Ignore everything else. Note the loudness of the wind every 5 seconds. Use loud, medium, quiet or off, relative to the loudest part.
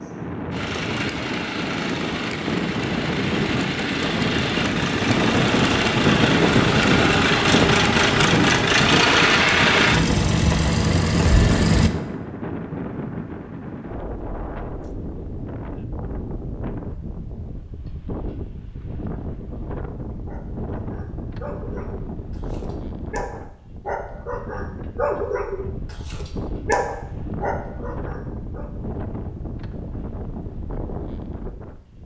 medium, loud, medium, quiet, quiet, quiet, quiet.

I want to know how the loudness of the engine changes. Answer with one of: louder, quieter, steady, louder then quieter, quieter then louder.
louder.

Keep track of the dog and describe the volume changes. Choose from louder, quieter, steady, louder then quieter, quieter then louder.
louder.